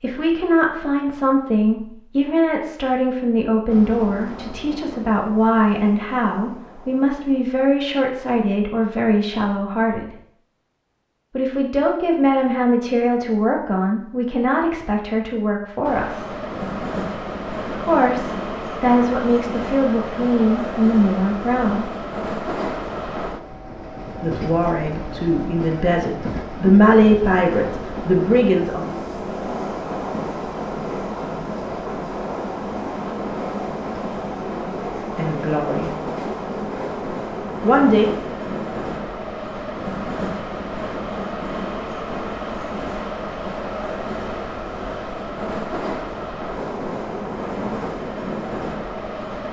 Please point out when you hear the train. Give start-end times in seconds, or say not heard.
3.7-7.5, 15.8-49.4.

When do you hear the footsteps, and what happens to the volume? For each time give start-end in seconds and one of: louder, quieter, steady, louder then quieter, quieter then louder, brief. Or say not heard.
not heard.